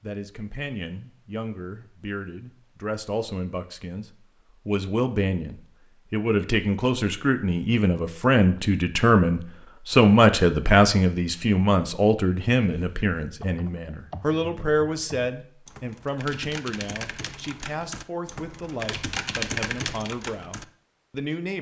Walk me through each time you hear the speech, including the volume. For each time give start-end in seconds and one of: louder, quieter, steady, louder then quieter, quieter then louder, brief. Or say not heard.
0.0-21.5 louder then quieter.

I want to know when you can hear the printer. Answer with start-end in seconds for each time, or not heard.
not heard.